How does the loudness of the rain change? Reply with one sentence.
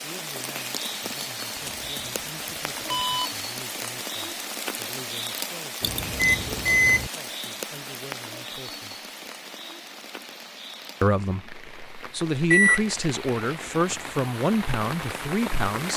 The volume of the rain goes down, then up.